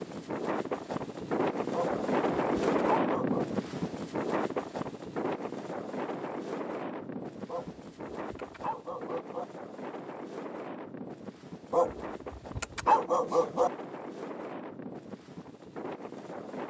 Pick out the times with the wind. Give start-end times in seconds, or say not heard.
0.0-16.6.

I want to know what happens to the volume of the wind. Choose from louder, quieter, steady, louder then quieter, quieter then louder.
quieter.